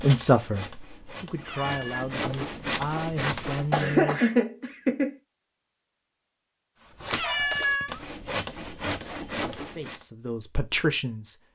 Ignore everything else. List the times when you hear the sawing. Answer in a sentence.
You can hear the sawing from 0.0 to 4.0 s and from 6.8 to 10.1 s.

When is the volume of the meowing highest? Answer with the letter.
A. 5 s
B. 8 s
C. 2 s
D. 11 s
B.